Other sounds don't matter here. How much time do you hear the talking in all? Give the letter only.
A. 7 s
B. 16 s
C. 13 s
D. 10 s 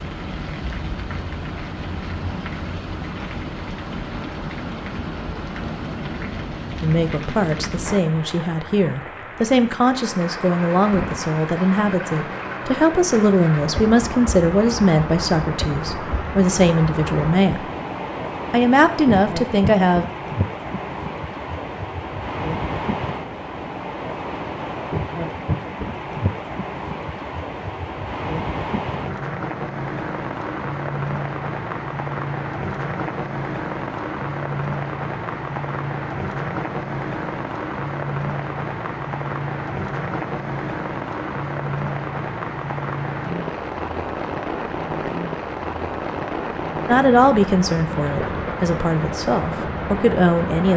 B.